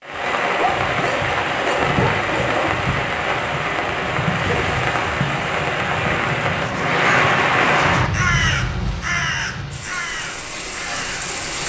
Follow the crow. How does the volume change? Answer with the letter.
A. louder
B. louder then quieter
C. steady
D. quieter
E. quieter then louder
D.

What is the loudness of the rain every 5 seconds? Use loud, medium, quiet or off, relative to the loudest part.
loud, loud, medium.